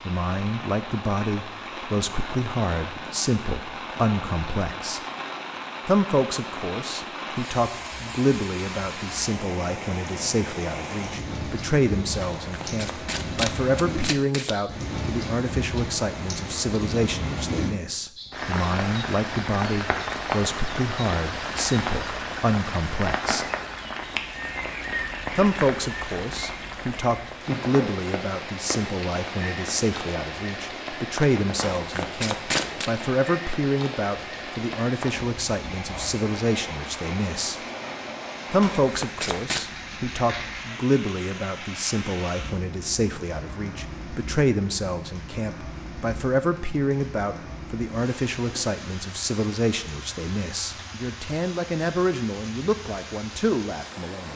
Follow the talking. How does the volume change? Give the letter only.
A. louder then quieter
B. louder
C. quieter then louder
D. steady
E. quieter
D.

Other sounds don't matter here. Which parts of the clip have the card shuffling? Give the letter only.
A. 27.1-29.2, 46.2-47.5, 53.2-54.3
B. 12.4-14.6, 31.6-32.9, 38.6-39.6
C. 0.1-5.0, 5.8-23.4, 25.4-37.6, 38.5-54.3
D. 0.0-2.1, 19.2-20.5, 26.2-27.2
B.